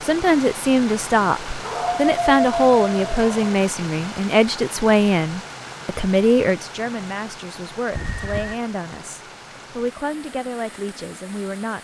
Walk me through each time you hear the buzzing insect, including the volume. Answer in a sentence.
The buzzing insect can't be heard in this clip.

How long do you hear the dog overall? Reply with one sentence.
The dog can be heard for 2 seconds in total.